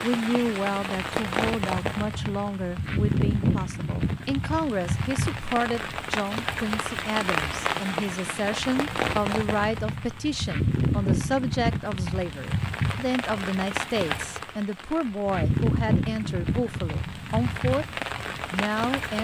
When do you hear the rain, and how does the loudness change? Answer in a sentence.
The rain can be heard from 0.0 to 19.1 s, at a steady volume.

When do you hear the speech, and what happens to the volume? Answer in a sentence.
You can hear the speech from 0.0 to 19.1 s, at a steady volume.